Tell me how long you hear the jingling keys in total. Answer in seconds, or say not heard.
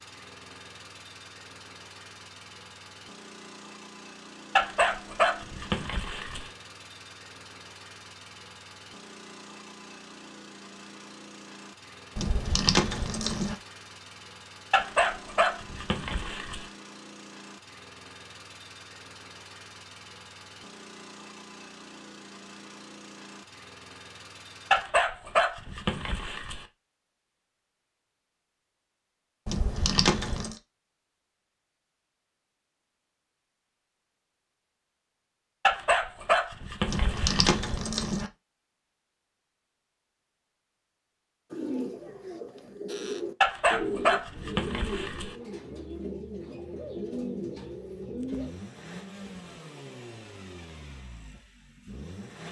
4 s.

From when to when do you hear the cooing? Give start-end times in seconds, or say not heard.
41.5-48.5.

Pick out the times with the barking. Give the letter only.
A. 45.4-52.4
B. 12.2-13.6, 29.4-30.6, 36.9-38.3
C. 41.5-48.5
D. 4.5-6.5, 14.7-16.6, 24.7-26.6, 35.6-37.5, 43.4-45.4
D.